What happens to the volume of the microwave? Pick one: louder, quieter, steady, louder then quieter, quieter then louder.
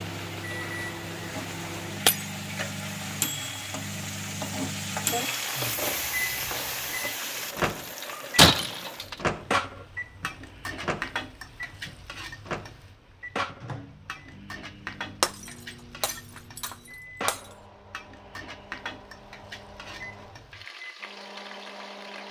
quieter.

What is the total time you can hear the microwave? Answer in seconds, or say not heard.
22 s.